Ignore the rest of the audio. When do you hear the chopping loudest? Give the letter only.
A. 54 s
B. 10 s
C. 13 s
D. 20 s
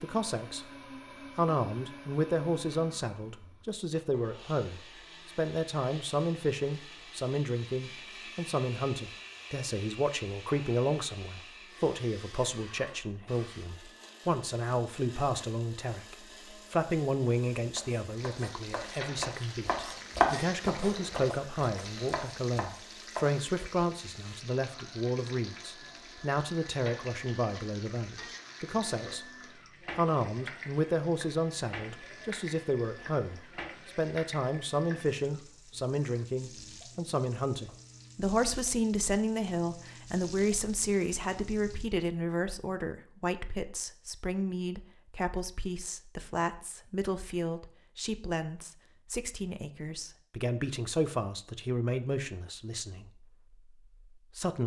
D.